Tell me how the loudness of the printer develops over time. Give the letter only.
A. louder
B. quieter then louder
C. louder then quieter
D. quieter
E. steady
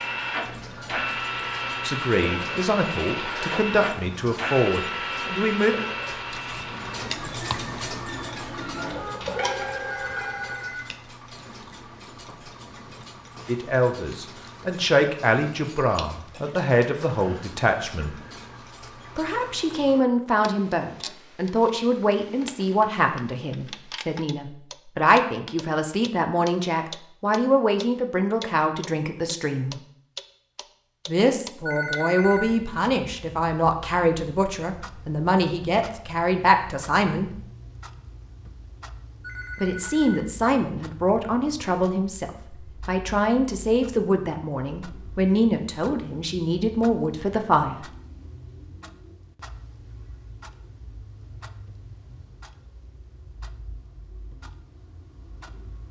B.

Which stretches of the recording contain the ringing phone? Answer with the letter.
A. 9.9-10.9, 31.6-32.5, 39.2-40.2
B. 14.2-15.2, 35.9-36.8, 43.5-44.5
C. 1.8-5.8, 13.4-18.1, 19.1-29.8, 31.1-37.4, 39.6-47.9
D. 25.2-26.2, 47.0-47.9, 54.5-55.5
A.